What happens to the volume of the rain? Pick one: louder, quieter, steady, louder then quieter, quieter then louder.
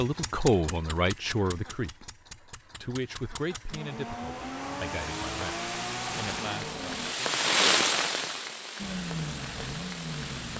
louder then quieter.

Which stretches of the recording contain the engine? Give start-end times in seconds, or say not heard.
0.0-7.2, 8.8-10.5.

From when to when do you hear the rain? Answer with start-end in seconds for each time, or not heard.
5.0-10.5.